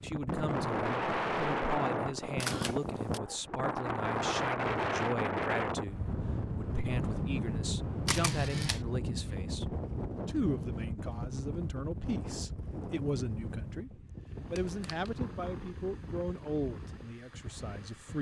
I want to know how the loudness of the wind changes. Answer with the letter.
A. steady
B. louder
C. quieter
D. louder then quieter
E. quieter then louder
C.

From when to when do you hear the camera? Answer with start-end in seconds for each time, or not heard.
2.4-3.2, 8.1-8.8, 14.5-15.2.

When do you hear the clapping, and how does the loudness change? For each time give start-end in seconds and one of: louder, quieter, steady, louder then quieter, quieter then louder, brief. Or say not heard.
not heard.